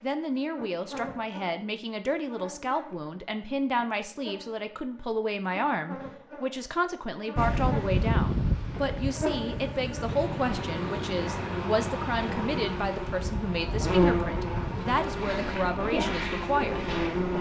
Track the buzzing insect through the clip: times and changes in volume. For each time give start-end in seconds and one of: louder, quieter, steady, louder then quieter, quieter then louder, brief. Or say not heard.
0.0-17.3 louder.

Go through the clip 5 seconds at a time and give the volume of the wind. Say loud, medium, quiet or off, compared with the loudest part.
off, loud, medium, medium.